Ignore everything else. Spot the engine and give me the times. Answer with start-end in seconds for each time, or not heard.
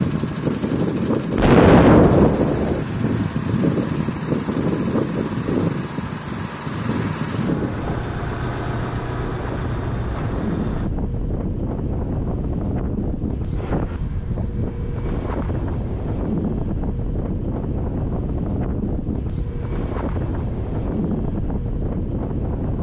0.0-10.9.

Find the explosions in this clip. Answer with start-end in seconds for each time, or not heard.
1.4-2.9.